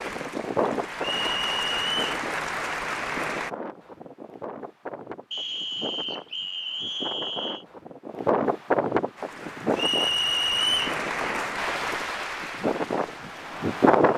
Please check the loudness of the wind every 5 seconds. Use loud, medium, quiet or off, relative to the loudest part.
medium, loud, loud.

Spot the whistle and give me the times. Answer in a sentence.
You can hear the whistle from 1.0 to 2.0 s, from 5.3 to 7.7 s and from 9.8 to 11.0 s.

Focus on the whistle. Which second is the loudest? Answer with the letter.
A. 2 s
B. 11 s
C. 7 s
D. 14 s
B.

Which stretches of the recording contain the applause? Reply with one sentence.
The applause can be heard from 0.0 to 3.5 s and from 9.2 to 14.1 s.